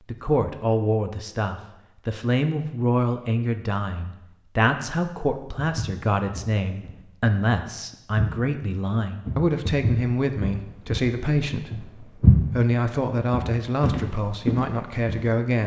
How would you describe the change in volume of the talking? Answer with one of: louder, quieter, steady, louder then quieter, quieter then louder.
steady.